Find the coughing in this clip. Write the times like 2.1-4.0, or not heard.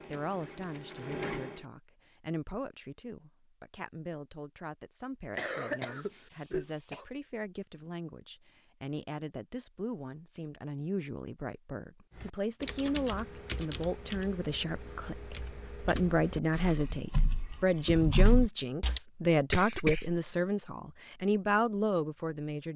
5.3-7.0, 19.5-20.2.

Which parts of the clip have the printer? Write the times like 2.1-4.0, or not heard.
0.0-1.7.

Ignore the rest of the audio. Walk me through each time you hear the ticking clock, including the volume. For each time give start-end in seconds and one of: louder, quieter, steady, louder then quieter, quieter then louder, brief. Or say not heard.
not heard.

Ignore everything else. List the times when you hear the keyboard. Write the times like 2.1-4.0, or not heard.
12.1-19.0.